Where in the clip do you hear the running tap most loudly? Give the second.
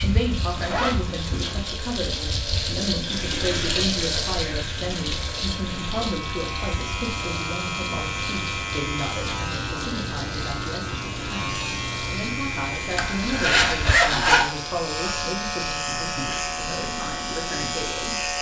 4 s.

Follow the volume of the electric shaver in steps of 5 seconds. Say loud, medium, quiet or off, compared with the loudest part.
medium, loud, loud, loud.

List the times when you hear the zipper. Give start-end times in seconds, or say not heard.
0.6-1.6, 12.9-14.4.